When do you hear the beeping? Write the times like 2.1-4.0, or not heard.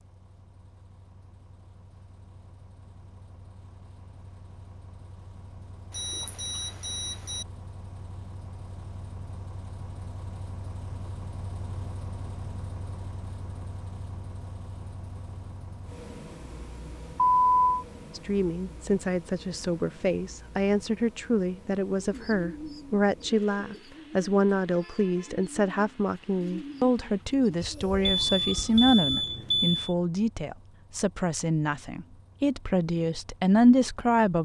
5.9-7.5, 17.2-17.6, 28.0-29.9.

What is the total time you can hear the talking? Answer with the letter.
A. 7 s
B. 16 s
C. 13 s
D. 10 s
B.